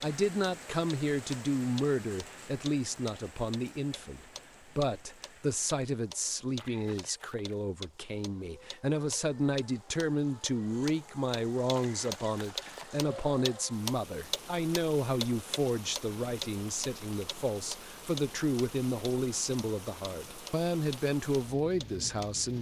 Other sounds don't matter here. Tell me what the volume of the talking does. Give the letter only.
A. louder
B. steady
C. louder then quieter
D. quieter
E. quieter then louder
B.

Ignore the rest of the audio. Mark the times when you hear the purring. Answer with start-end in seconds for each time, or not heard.
not heard.